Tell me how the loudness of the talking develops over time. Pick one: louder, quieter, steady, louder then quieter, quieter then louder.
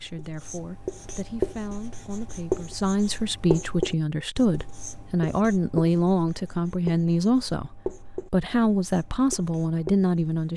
louder.